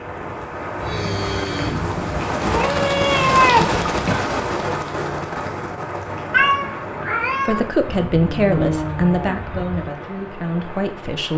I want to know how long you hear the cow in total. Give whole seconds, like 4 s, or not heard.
4 s.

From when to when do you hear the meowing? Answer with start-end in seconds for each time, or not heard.
2.5-4.2, 6.3-7.7.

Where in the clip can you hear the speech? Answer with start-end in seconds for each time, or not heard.
7.5-11.3.